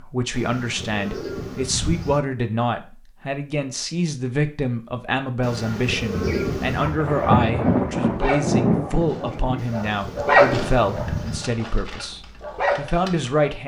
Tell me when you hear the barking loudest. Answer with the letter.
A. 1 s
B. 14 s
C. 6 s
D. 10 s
D.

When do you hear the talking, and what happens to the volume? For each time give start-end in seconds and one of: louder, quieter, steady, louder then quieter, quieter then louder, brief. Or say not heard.
0.0-13.6 steady.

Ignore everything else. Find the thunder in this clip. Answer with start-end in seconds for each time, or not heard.
6.2-9.7.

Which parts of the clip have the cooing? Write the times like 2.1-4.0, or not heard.
0.3-2.2, 5.4-7.0, 9.6-11.4.